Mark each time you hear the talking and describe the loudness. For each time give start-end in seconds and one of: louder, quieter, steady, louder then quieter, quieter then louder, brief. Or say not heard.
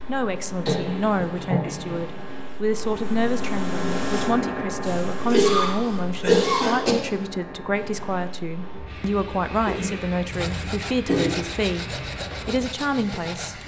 0.1-13.6 steady.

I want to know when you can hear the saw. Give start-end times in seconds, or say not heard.
10.3-13.6.